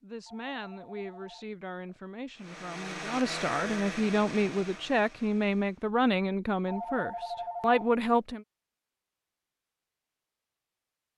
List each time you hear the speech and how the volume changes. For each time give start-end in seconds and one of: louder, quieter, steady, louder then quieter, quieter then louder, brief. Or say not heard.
0.0-8.4 louder.